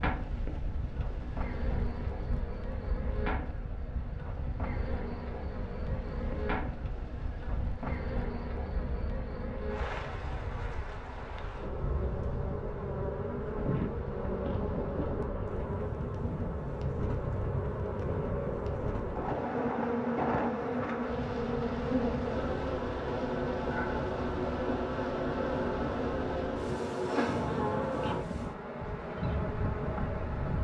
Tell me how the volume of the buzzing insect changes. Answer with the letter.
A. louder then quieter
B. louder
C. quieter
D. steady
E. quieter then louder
B.